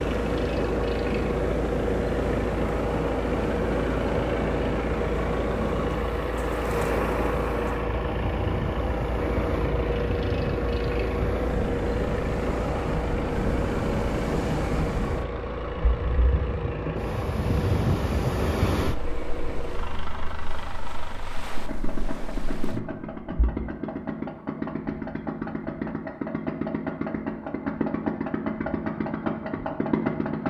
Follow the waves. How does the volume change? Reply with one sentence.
The volume of the waves goes down.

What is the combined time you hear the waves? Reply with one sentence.
You can hear the waves for 24 seconds altogether.